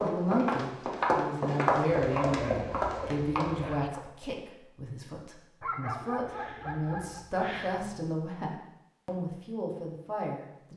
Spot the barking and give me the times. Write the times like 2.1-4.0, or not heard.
1.9-3.9, 5.6-8.1.